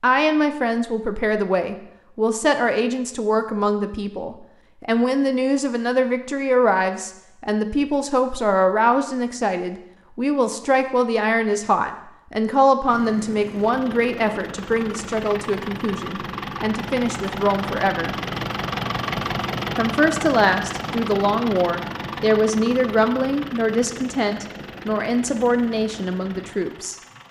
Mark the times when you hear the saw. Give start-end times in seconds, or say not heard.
not heard.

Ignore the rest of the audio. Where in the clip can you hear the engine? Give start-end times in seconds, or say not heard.
12.8-27.2.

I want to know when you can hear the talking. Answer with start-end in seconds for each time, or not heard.
0.0-18.1, 19.8-27.0.